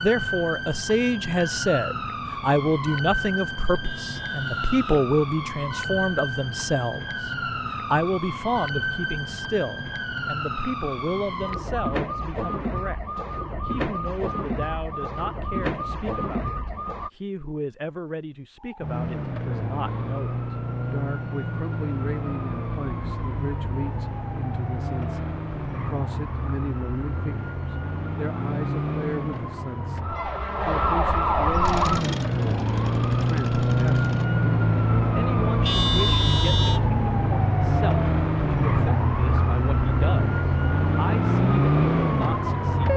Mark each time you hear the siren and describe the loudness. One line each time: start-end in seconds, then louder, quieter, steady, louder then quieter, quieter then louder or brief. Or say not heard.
0.0-17.1 steady
18.6-42.9 louder.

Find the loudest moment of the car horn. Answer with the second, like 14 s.
36 s.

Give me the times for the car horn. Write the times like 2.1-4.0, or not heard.
3.8-5.0, 35.6-36.8.